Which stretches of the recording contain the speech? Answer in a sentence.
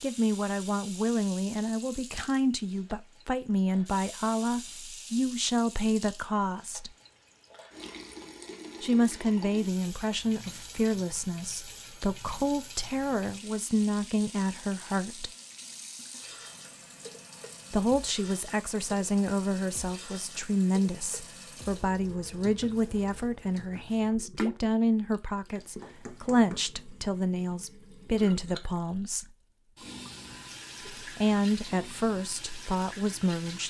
The speech can be heard from 0.0 to 6.9 s, from 8.8 to 15.3 s, from 17.7 to 29.2 s and from 31.0 to 33.6 s.